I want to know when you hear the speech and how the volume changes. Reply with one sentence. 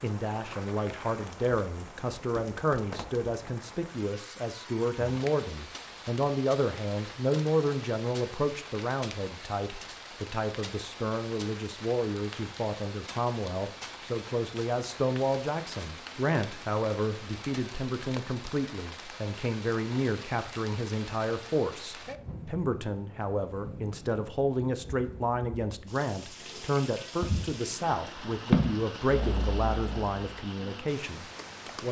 The speech can be heard from 0.0 to 31.8 s, at a steady volume.